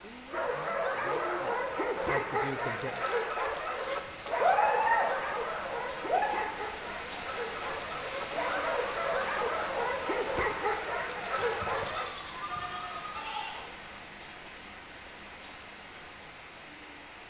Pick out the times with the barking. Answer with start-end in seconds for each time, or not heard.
0.3-12.2.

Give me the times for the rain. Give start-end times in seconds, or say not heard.
0.0-17.2.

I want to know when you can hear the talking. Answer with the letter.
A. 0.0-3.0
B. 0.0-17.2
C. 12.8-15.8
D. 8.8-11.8
A.